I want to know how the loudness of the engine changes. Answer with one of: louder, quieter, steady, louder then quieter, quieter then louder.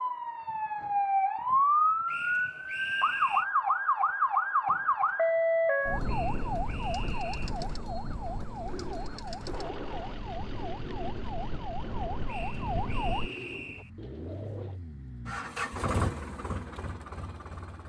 louder.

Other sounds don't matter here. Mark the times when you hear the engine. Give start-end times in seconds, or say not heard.
5.8-17.8.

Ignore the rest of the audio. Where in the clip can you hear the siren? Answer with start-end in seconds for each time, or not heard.
0.0-13.3.